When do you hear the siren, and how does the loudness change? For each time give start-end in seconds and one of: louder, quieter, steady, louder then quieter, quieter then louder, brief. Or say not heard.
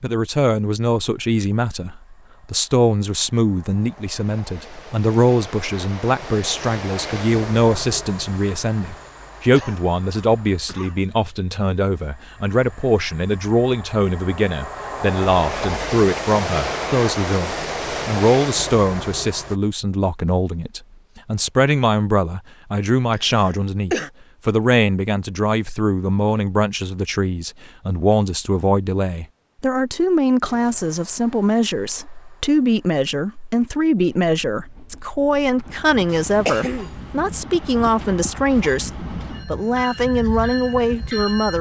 not heard.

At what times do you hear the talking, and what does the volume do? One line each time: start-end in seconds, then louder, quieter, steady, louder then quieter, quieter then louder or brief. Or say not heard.
0.0-41.5 steady.